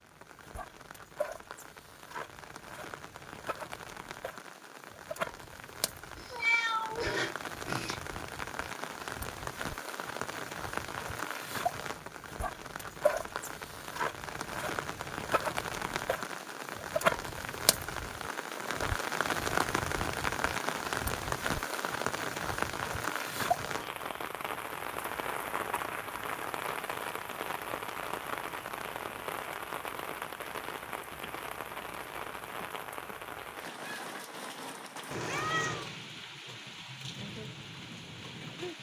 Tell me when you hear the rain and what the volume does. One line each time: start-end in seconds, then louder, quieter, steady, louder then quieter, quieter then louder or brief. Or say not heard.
0.0-38.7 louder then quieter.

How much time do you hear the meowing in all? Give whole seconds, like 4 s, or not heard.
3 s.